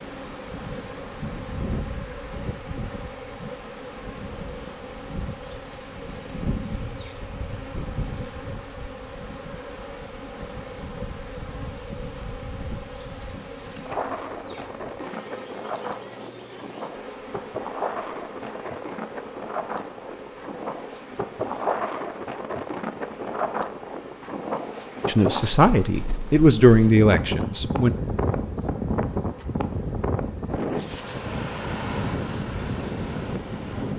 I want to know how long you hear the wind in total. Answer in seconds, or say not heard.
34 s.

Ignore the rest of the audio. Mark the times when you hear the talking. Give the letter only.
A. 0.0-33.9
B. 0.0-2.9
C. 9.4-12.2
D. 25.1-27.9
D.